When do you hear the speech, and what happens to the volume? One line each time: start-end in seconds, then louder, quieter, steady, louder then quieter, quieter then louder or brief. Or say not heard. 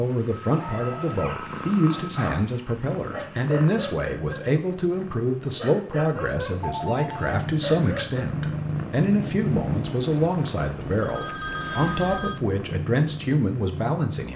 0.0-14.3 steady.